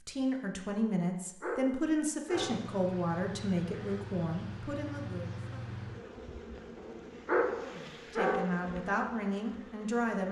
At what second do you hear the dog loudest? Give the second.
7 s.